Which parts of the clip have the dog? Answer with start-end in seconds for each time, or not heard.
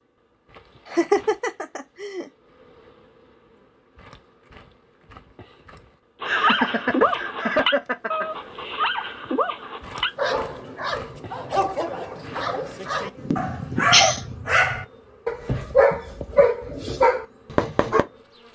6.2-18.1.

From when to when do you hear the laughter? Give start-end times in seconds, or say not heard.
0.8-2.2, 6.2-8.2, 13.2-14.3.